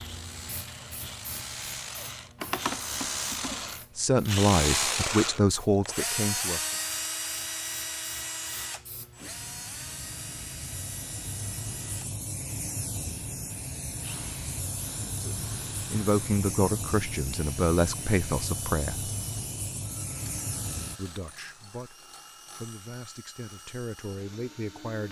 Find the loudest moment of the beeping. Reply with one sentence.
The volume of the beeping peaks at 3 seconds.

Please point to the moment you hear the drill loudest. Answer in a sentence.
The volume of the drill peaks at 5 seconds.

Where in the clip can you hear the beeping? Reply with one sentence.
The beeping can be heard from 2.4 to 3.8 s.